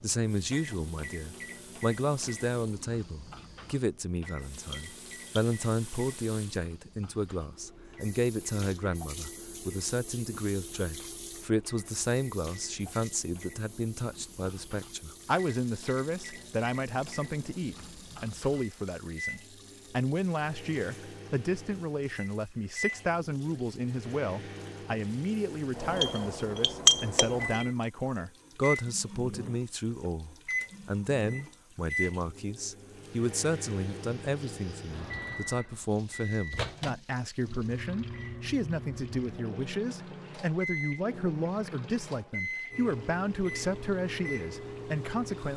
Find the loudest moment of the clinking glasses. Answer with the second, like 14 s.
27 s.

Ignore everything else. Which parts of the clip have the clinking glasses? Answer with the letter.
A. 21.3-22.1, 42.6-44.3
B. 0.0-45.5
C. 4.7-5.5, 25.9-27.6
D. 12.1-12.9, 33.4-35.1
C.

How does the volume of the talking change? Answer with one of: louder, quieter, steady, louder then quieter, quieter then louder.
steady.